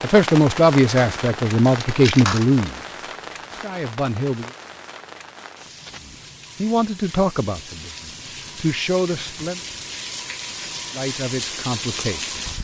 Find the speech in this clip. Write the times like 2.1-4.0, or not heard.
0.0-4.5, 6.0-9.6, 10.9-12.4.